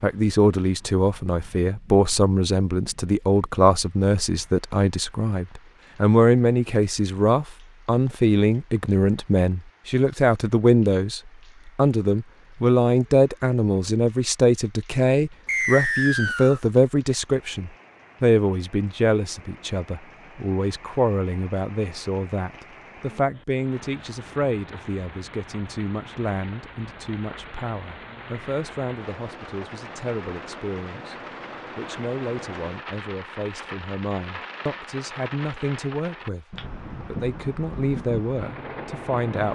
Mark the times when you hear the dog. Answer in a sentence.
You can't hear the dog here.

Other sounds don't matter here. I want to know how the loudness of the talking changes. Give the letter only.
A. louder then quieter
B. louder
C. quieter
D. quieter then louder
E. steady
C.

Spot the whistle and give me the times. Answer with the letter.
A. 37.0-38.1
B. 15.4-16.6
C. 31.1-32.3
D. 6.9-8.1
B.